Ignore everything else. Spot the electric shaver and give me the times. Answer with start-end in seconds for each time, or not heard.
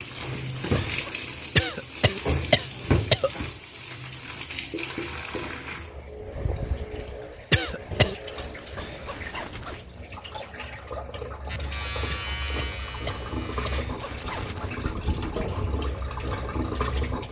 11.4-13.8.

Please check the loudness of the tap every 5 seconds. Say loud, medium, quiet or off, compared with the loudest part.
loud, medium, medium, loud.